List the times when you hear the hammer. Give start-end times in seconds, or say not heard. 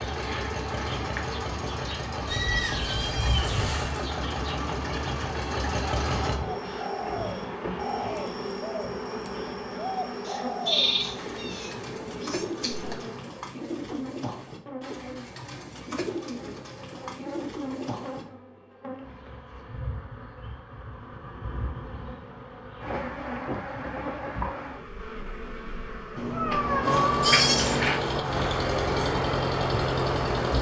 not heard.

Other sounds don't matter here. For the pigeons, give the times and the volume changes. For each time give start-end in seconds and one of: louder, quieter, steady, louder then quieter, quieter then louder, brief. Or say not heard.
6.3-18.2 steady.